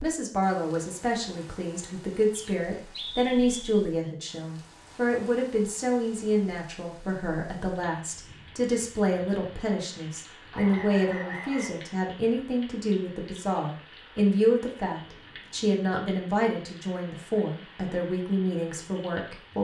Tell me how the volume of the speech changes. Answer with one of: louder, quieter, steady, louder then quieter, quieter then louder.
steady.